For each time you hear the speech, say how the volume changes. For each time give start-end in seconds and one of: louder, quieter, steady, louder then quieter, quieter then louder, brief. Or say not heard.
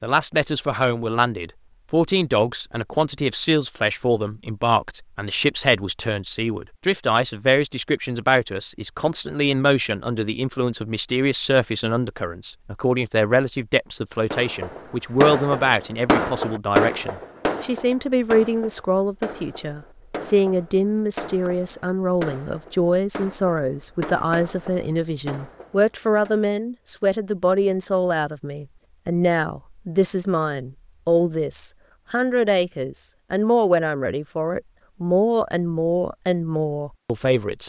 0.0-37.6 steady.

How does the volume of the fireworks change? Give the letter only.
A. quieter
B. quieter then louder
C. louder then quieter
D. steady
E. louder
A.